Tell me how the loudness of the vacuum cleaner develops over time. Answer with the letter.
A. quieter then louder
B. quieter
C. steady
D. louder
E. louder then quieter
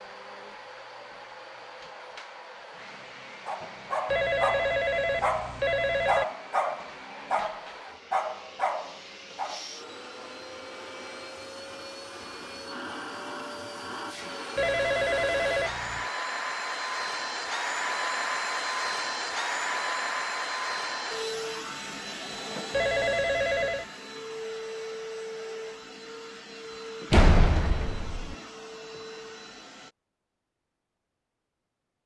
E.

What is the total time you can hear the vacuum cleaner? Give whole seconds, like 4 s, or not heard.
30 s.